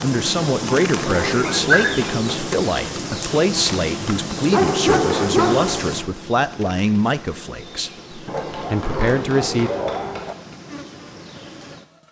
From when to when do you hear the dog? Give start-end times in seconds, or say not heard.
1.4-2.0, 4.5-5.9, 8.3-10.3.